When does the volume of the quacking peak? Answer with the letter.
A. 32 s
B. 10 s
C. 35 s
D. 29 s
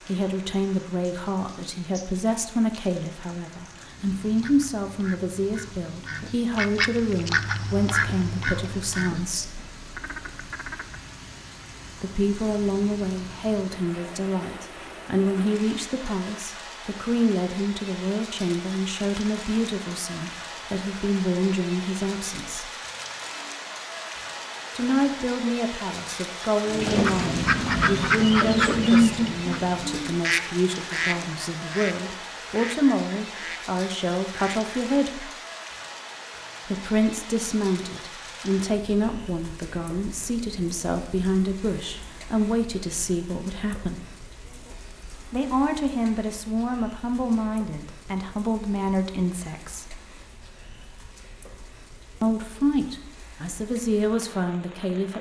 D.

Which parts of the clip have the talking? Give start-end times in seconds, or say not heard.
0.1-9.6, 12.0-22.7, 24.8-35.3, 36.6-44.0, 45.3-50.0, 52.2-55.1.